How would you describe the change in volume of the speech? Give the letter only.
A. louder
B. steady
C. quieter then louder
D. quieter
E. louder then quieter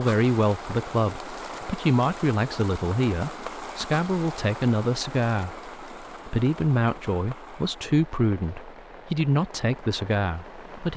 B.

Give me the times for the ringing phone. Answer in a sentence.
You can't hear the ringing phone here.